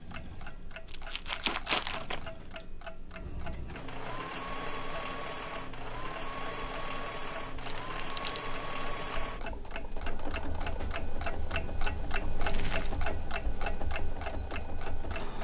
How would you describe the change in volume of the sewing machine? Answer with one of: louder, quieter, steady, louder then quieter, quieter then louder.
louder then quieter.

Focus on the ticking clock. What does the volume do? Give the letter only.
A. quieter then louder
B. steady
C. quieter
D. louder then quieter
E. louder
E.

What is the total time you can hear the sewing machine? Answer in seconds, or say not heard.
15 s.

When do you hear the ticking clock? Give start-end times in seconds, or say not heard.
0.0-15.3.